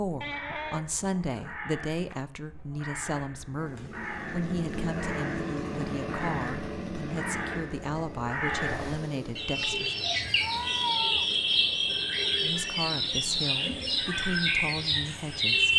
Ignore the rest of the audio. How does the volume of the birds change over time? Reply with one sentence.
The volume of the birds goes up.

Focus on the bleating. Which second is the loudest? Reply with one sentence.
The loudest moment of the bleating is at 11 seconds.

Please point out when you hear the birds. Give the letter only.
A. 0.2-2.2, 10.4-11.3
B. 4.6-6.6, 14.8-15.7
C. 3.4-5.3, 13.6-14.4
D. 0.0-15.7
D.